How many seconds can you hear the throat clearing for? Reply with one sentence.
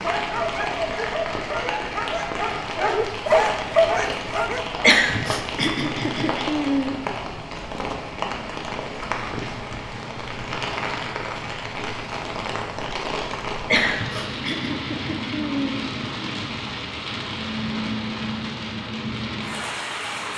You can hear the throat clearing for 4 seconds altogether.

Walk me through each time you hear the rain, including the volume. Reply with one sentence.
You can hear the rain from 0.0 to 20.3 s, at a steady volume.